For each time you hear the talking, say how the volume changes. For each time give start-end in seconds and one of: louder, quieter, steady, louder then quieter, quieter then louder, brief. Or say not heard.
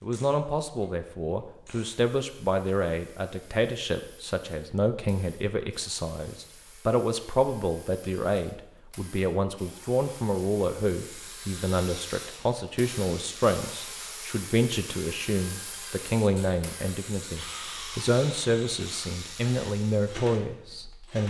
0.0-21.2 steady.